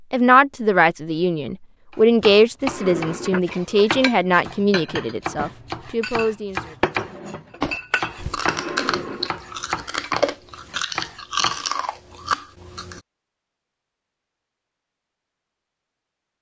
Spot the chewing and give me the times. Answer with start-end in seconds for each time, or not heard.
7.6-13.0.